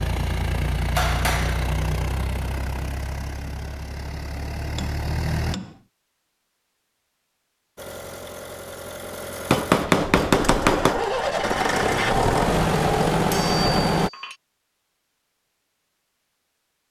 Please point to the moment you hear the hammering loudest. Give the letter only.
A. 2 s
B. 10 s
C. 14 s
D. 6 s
B.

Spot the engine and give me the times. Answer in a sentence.
You can hear the engine from 0.0 to 5.5 s and from 7.8 to 14.1 s.